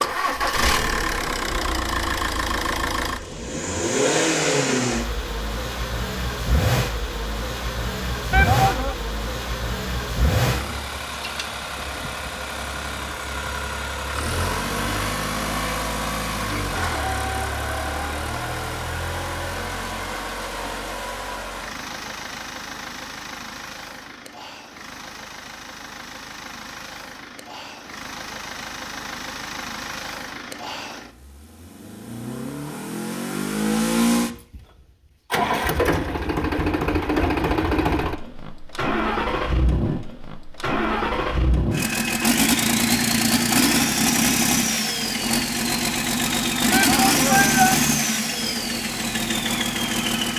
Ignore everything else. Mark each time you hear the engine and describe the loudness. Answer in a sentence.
The engine can be heard from 0.0 to 50.3 s, getting quieter then louder.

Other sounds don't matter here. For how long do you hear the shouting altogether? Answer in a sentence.
The shouting can be heard for 2 seconds in total.